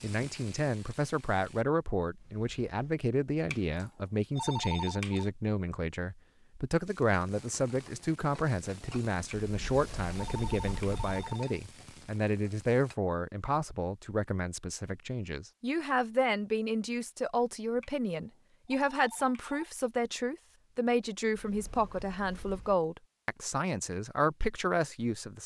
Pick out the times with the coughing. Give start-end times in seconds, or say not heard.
not heard.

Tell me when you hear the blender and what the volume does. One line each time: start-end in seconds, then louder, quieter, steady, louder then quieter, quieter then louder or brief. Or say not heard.
not heard.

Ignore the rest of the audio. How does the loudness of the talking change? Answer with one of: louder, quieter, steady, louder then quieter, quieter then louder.
steady.